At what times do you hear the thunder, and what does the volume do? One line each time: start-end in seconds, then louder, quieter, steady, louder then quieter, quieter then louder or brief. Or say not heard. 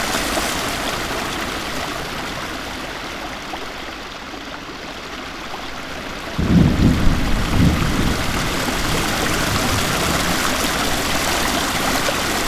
6.3-10.4 quieter.